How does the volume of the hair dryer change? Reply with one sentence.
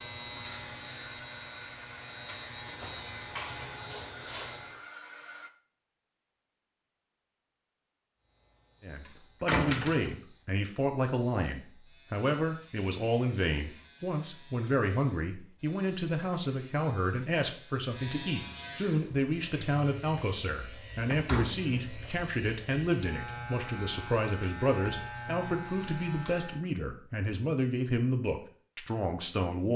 The loudness of the hair dryer stays about the same.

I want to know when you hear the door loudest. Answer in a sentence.
The volume of the door peaks at 10 seconds.